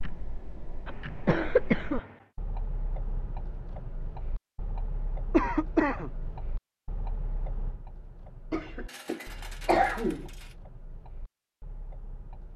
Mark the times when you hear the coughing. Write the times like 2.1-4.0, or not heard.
0.8-2.1, 5.3-6.1, 8.5-10.2.